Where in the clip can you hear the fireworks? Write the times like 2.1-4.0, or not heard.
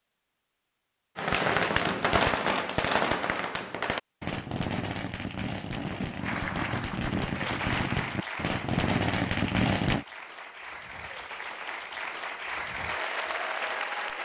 1.1-10.1.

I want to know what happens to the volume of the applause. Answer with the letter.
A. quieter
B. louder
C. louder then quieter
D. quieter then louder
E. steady
D.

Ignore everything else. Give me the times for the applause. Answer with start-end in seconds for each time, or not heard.
6.2-14.2.